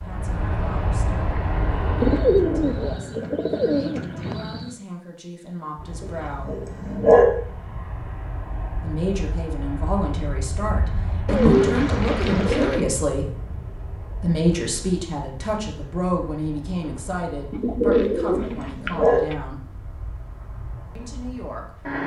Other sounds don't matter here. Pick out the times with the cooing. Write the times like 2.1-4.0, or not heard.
2.0-4.8, 11.2-12.8, 17.5-19.4.